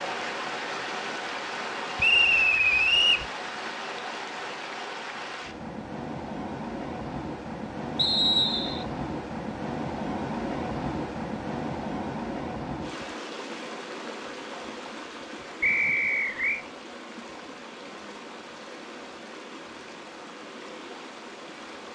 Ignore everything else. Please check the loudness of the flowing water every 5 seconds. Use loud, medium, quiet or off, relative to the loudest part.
loud, loud, loud, medium, medium.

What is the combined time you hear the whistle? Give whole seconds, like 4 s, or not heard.
3 s.